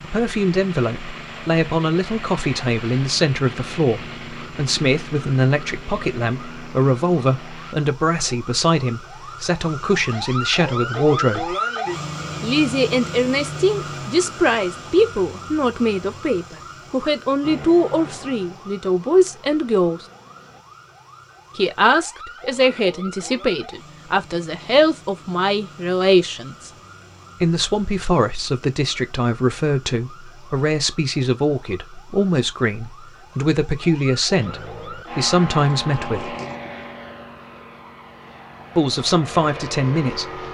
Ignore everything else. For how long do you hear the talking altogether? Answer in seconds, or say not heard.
35 s.